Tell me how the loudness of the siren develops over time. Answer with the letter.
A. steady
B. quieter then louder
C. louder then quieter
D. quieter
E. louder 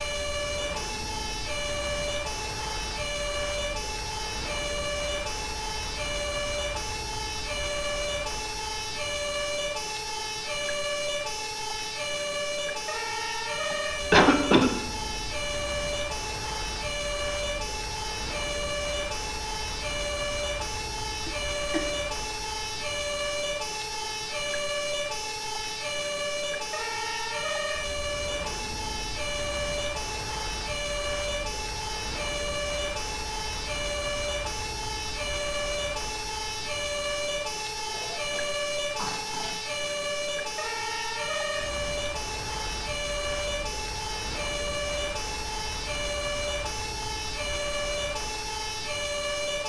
A.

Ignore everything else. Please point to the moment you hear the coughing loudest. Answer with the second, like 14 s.
14 s.